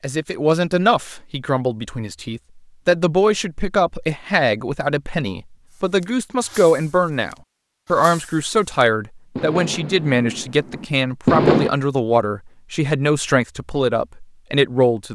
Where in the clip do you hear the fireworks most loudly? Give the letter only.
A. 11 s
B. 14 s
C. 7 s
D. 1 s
A.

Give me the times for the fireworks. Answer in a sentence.
The fireworks can be heard from 5.7 to 11.7 s.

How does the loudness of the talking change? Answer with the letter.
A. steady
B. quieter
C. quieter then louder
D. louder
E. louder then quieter
A.